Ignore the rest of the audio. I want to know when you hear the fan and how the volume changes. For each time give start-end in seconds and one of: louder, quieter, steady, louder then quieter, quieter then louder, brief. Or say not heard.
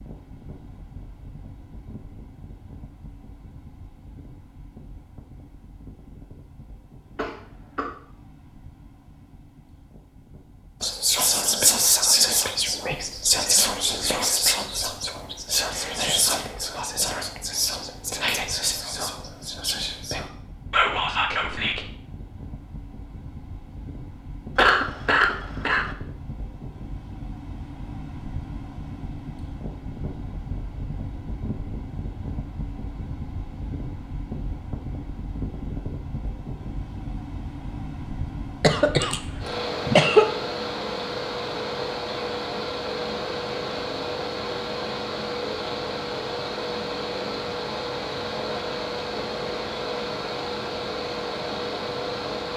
0.0-52.5 louder.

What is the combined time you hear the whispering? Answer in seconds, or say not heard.
11 s.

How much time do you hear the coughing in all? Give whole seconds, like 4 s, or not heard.
4 s.